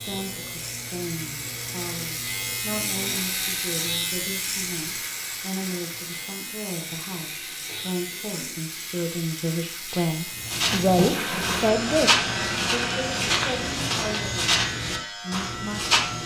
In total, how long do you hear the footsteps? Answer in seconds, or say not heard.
6 s.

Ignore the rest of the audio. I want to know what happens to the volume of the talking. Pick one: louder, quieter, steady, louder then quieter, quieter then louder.
louder then quieter.